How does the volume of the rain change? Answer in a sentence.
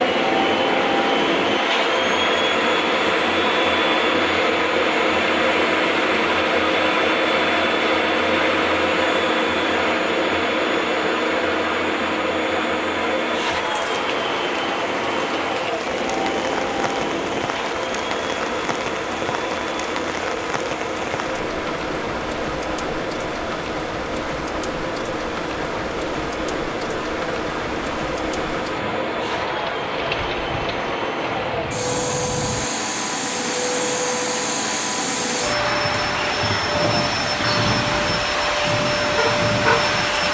The loudness of the rain stays about the same.